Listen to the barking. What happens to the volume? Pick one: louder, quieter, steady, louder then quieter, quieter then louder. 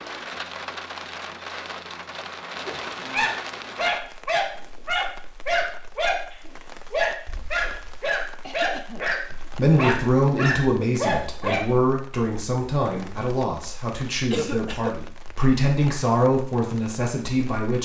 steady.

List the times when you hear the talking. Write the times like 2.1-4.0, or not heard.
9.3-17.8.